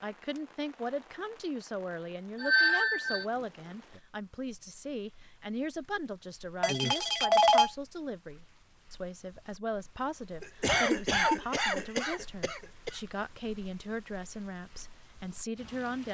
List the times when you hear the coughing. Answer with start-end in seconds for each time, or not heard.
10.4-13.0.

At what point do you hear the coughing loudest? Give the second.
11 s.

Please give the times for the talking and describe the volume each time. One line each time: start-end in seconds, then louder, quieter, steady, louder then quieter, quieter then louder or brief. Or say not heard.
0.0-16.0 steady.